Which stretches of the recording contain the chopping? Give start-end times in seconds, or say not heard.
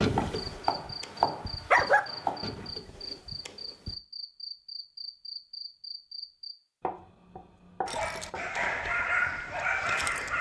0.1-2.7, 6.8-8.6.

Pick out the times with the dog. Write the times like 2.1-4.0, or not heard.
0.0-4.0, 7.8-10.3.